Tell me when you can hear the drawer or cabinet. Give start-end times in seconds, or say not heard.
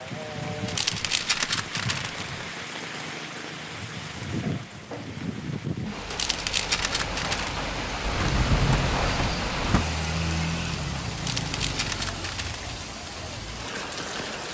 4.4-5.4, 8.1-9.8.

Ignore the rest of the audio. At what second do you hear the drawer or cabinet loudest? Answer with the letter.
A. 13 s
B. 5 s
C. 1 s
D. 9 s
D.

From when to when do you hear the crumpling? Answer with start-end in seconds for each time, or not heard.
0.7-2.5, 6.1-7.7, 11.2-12.7.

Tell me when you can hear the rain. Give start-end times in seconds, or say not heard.
0.0-14.4.